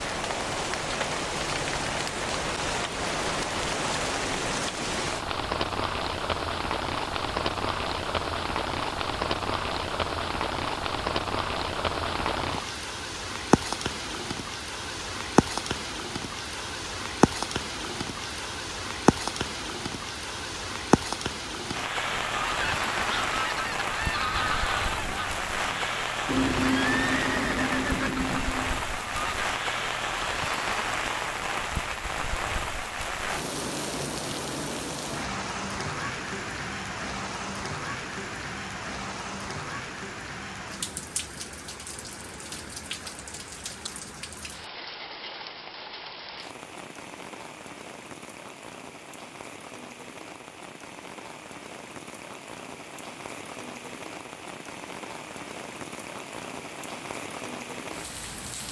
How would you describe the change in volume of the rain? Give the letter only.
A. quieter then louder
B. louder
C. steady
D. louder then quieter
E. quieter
E.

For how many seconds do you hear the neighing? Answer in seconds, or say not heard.
2 s.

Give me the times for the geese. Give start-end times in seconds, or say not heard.
22.2-29.4.